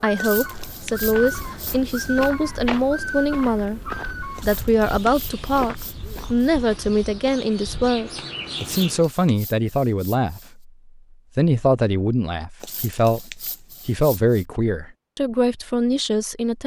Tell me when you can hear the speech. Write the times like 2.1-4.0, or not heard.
0.0-10.6, 11.3-16.6.